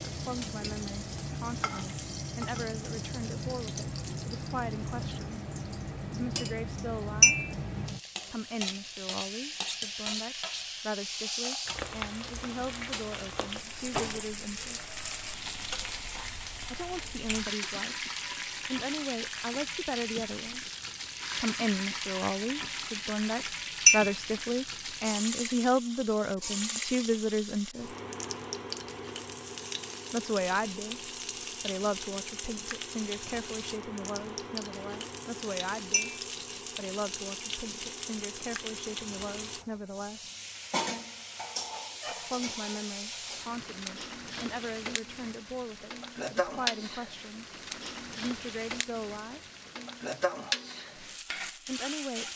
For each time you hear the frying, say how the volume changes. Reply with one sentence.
You can hear the frying from 0.0 to 52.3 s, at a steady volume.